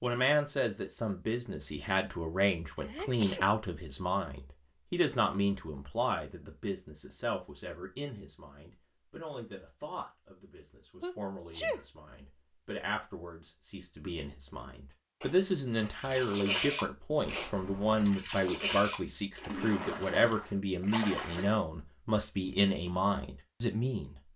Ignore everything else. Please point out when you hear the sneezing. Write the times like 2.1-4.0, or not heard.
2.8-3.5, 11.0-11.8, 17.2-18.1.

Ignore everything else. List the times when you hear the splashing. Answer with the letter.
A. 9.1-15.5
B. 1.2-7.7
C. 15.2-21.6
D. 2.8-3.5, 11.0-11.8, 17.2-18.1
C.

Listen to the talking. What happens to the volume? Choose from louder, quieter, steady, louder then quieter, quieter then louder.
quieter then louder.